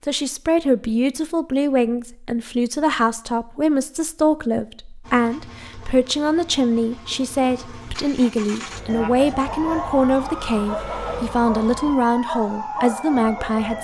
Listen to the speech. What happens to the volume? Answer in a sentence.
The volume of the speech stays about the same.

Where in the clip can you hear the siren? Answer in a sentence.
You can hear the siren from 8.8 to 13.7 s.